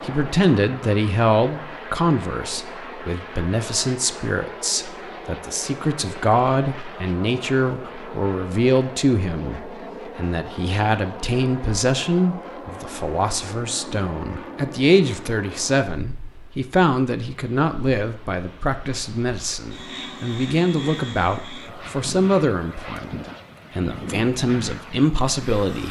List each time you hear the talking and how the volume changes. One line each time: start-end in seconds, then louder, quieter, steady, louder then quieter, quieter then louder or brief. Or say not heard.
0.0-25.8 steady.